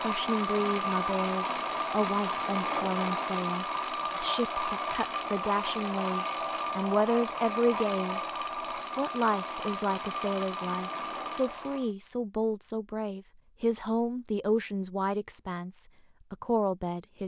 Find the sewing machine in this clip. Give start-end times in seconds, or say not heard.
0.0-11.9.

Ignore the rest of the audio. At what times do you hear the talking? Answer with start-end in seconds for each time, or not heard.
0.0-8.2, 8.9-17.2.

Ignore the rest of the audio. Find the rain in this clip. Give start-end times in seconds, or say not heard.
not heard.